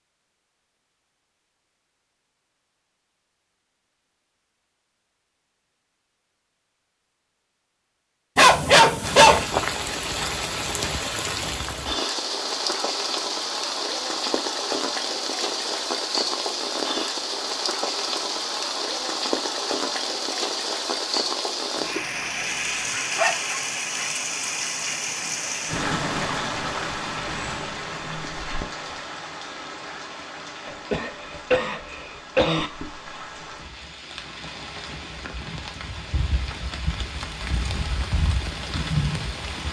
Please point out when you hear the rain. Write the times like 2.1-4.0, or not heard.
9.0-39.6.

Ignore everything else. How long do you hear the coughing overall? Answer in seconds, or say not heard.
2 s.